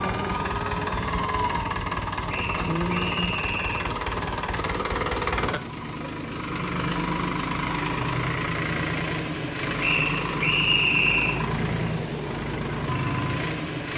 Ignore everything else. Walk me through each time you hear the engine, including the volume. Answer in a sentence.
The engine can be heard from 0.0 to 13.9 s, at a steady volume.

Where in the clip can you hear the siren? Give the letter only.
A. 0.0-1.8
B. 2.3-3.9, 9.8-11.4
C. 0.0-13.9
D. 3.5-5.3
A.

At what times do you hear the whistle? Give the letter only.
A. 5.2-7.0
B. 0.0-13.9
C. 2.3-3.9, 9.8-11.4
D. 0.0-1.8
C.